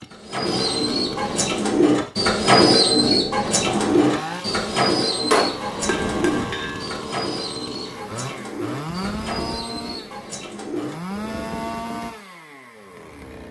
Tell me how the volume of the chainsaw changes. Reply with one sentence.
The loudness of the chainsaw stays about the same.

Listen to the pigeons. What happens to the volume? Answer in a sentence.
The volume of the pigeons goes down.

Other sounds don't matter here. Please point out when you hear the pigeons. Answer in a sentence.
The pigeons can be heard from 0.1 to 12.0 s.